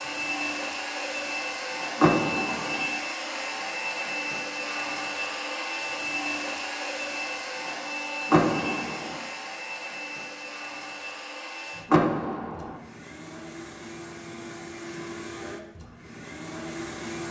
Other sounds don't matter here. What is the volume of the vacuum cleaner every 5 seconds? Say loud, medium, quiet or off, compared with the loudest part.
loud, loud, medium, medium.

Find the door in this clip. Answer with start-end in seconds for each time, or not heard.
1.9-2.9, 8.3-9.2, 11.9-12.8.